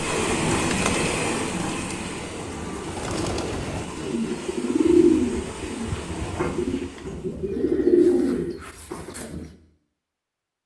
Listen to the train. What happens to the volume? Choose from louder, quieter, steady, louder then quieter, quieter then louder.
quieter.